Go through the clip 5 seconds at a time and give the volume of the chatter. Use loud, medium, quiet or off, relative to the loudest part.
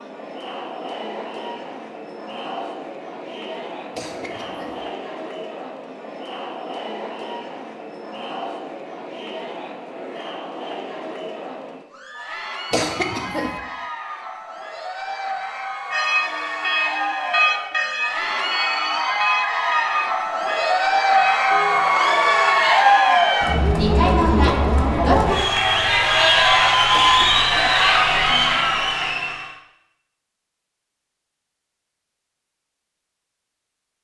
quiet, quiet, quiet, medium, loud, loud, off.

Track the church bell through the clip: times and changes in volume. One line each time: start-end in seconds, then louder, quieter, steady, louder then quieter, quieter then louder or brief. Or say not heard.
15.9-22.6 quieter.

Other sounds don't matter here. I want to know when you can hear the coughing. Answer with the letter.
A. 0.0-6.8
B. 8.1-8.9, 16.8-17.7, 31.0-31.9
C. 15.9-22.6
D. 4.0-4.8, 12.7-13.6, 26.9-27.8
D.